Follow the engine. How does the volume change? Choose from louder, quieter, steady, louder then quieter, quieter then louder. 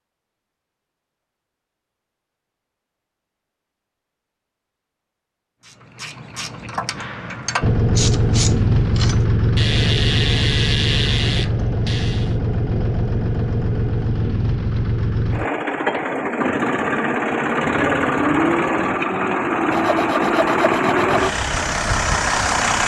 steady.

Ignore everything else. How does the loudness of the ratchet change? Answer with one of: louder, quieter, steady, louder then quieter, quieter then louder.
louder.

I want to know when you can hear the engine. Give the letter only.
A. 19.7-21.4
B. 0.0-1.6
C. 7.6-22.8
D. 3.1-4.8
C.